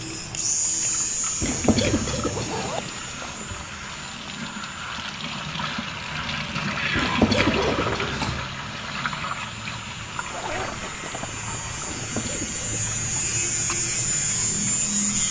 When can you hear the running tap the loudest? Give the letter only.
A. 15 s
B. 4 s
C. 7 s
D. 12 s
C.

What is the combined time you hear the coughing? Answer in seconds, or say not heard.
5 s.